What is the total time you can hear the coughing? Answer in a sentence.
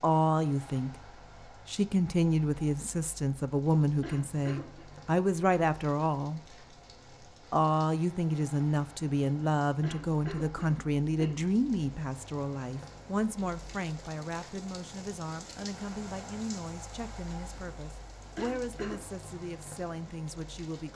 You can hear the coughing for 3 seconds altogether.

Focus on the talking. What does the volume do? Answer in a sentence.
The loudness of the talking goes down.